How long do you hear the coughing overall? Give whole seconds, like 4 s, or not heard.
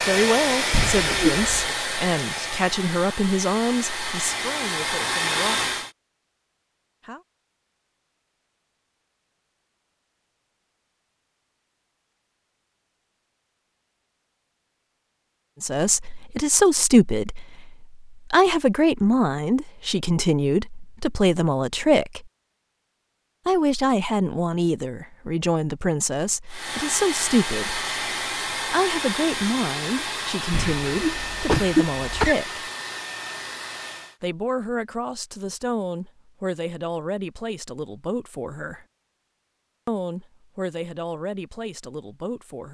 3 s.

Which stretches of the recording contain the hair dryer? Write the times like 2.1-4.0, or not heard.
0.0-5.9, 26.4-34.1.